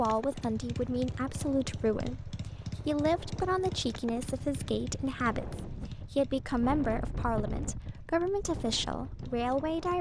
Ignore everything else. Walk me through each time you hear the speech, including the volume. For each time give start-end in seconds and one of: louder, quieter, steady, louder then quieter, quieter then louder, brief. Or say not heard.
0.0-9.9 steady.